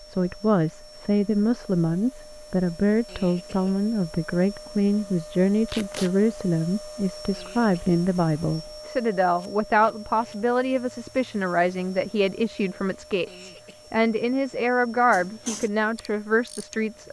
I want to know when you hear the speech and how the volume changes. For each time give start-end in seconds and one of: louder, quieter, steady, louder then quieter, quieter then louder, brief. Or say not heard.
0.1-17.0 steady.